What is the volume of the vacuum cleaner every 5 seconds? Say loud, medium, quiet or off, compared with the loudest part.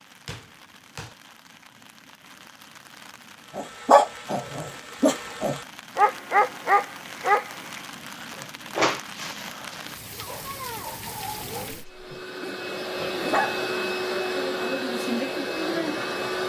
off, off, loud, loud.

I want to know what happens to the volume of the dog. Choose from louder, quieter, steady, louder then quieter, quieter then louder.
quieter.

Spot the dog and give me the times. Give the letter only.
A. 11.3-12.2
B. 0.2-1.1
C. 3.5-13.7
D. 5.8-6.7
C.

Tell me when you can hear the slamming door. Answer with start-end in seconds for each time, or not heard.
0.2-1.1.